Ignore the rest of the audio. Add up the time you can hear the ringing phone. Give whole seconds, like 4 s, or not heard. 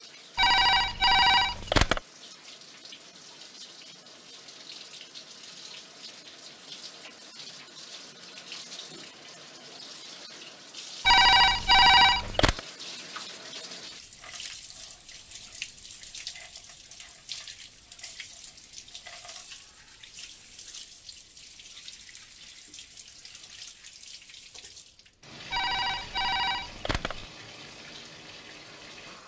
5 s.